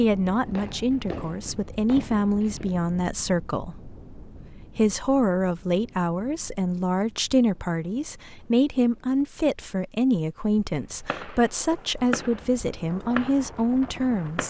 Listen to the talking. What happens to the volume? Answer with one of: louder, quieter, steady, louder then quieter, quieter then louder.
steady.